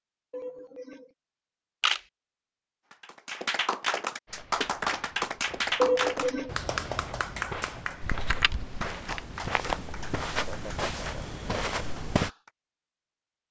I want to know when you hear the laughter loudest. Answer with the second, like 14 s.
6 s.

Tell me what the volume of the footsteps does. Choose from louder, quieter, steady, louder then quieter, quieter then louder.
louder.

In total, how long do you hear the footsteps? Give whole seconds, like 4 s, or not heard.
8 s.